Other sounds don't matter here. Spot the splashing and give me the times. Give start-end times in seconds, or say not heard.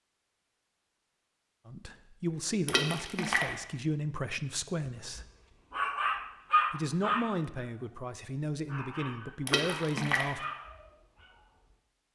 2.6-3.5, 9.4-10.3.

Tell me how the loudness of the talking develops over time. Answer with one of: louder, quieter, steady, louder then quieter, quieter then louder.
steady.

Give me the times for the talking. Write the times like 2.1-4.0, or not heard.
1.6-5.2, 6.7-10.4.